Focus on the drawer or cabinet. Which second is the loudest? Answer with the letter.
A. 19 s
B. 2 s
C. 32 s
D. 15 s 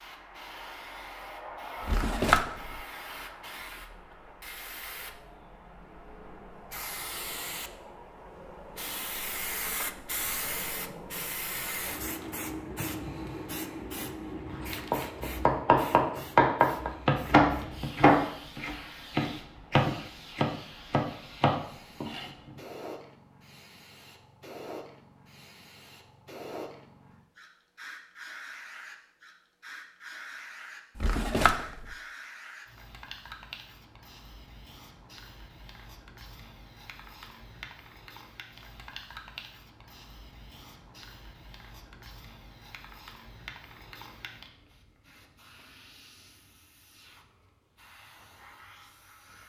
B.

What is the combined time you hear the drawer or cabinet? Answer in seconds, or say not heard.
2 s.